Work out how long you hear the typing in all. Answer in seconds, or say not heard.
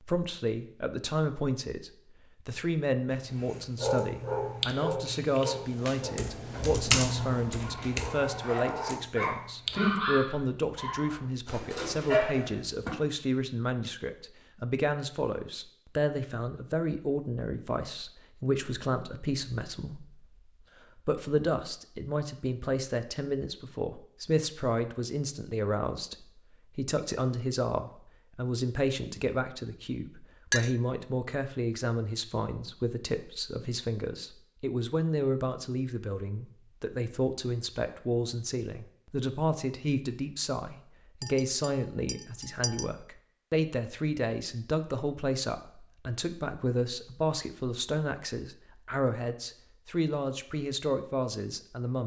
7 s.